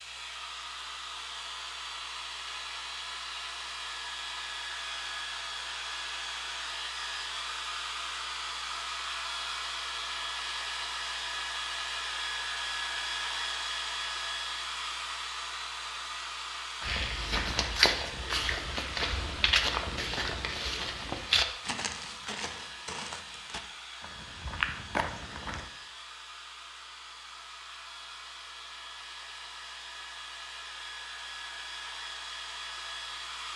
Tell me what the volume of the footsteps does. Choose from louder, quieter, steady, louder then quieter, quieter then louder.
quieter then louder.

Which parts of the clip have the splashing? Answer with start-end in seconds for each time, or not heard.
not heard.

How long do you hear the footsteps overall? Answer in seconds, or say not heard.
9 s.